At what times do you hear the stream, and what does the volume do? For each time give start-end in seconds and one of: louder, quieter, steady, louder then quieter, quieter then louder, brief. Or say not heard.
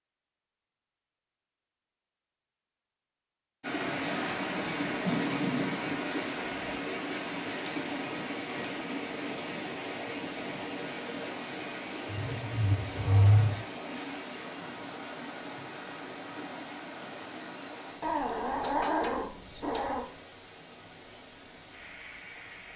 3.6-22.7 quieter.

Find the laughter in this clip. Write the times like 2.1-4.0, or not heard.
not heard.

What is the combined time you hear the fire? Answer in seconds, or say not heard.
not heard.